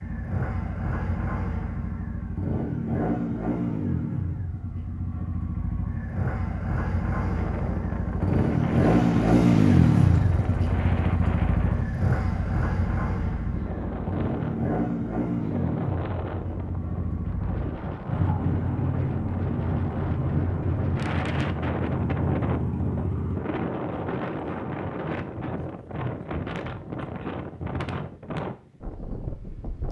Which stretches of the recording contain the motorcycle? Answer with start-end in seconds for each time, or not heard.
0.0-23.4.